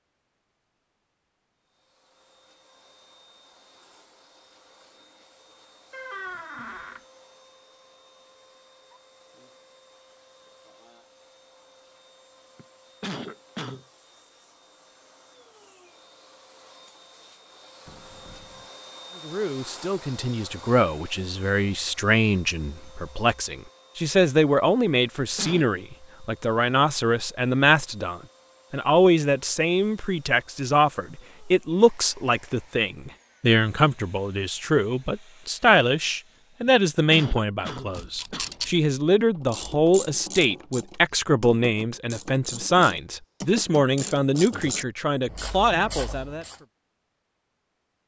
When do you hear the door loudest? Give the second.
6 s.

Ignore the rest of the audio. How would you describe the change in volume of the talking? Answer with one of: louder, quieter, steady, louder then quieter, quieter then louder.
steady.